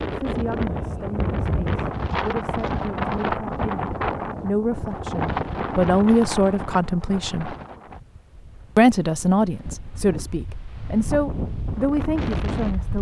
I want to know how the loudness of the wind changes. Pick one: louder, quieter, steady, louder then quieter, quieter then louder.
quieter then louder.